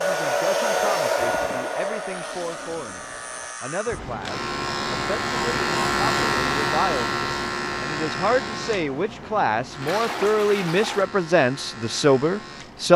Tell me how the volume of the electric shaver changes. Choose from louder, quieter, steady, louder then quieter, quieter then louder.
louder then quieter.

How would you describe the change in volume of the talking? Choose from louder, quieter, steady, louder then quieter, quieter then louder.
louder.